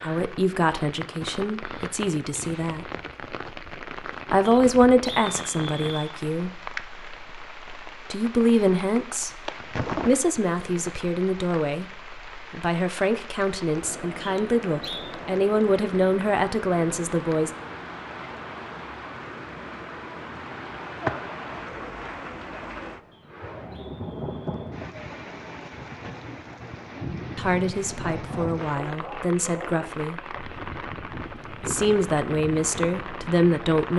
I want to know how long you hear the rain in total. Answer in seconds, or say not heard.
34 s.